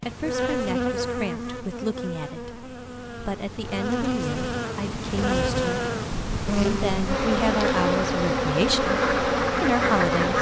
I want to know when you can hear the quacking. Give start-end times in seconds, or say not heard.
8.8-10.3.